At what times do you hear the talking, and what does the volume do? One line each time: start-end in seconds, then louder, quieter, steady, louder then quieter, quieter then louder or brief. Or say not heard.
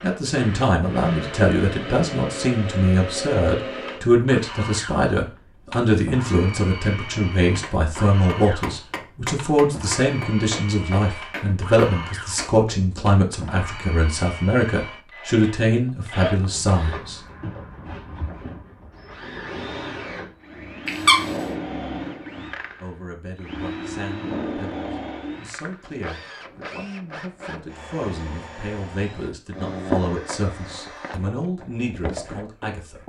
0.0-17.2 steady
22.8-33.0 louder.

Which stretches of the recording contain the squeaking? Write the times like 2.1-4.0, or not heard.
20.9-21.3.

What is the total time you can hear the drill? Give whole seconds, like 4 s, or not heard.
33 s.